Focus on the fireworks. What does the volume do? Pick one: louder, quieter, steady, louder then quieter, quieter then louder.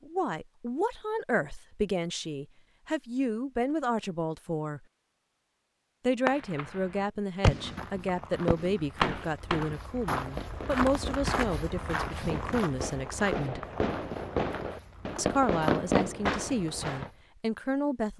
quieter then louder.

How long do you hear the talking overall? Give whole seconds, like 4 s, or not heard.
15 s.